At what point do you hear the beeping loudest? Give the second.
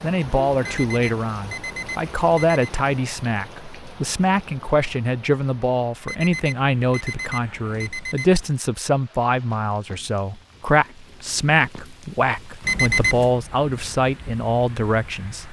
13 s.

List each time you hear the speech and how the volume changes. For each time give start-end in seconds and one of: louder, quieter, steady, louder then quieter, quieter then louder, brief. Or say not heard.
0.0-15.4 steady.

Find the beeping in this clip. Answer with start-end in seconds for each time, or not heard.
0.6-2.7, 6.0-8.4, 12.6-13.3.